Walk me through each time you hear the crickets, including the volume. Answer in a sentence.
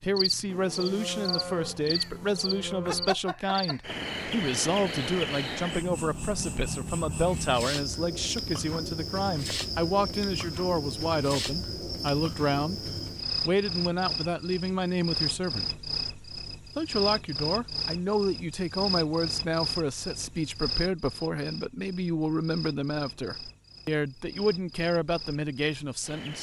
You can hear the crickets from 0.0 to 26.3 s, getting quieter.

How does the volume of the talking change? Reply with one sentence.
The volume of the talking stays about the same.